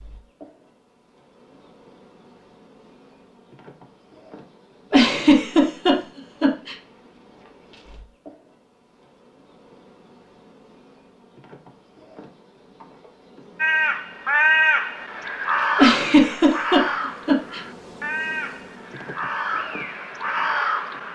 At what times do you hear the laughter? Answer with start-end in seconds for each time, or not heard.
4.9-6.8, 15.8-17.6.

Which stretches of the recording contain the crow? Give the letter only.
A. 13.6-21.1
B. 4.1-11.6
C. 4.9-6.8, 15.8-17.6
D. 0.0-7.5
A.